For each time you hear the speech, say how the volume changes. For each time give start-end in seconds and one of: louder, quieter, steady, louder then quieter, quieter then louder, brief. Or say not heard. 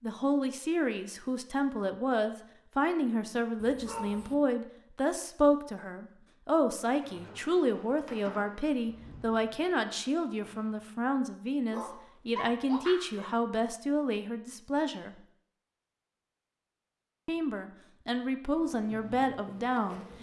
0.0-15.2 steady
17.2-20.0 brief.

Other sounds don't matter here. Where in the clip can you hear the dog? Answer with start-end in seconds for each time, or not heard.
3.6-4.3, 11.7-13.3.